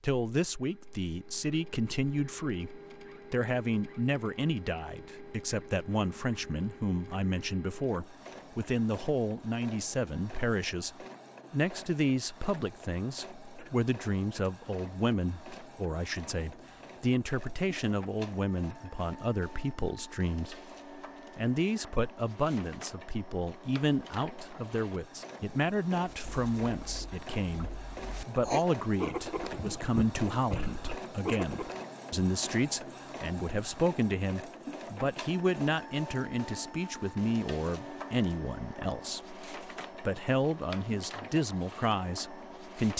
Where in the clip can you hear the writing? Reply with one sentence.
You can hear the writing from 26.1 to 31.8 s.